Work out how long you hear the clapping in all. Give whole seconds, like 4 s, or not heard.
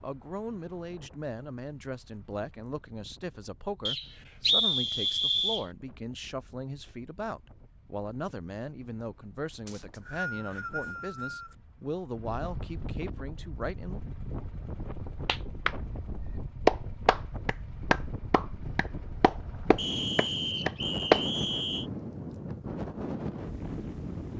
6 s.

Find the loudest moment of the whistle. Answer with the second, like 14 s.
5 s.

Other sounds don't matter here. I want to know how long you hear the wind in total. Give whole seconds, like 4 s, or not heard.
24 s.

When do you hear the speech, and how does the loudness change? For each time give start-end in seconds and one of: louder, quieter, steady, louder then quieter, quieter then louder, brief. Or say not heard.
0.0-14.0 steady.